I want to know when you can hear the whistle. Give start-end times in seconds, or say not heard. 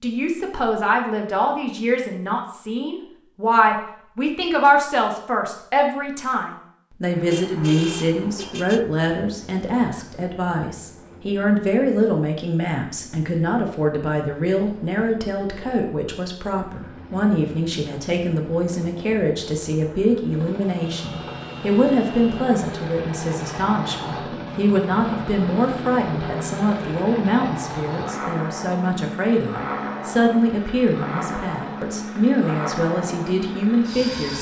not heard.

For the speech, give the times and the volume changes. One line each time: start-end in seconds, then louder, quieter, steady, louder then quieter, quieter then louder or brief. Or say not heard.
0.0-34.3 steady.